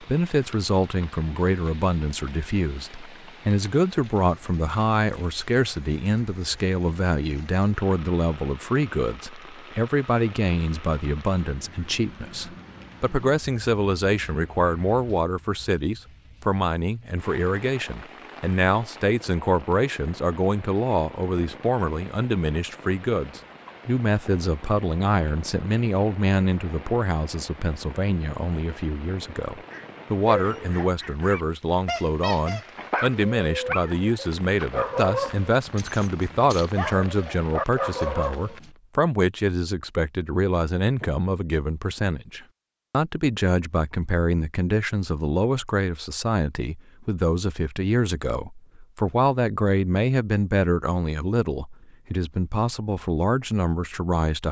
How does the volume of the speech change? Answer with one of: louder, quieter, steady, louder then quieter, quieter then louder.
steady.